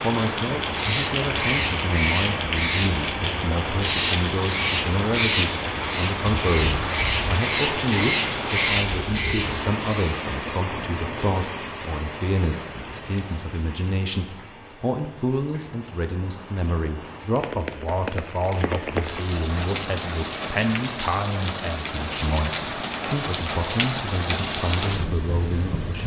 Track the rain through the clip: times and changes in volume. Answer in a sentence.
You can hear the rain from 0.0 to 26.0 s, getting quieter then louder.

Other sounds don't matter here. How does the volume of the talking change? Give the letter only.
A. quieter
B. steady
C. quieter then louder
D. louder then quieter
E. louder
B.